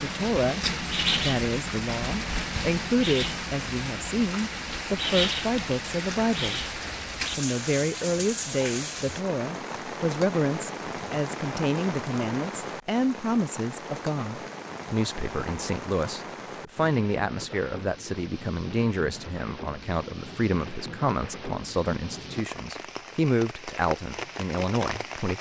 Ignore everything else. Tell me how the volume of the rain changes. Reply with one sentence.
The loudness of the rain goes down.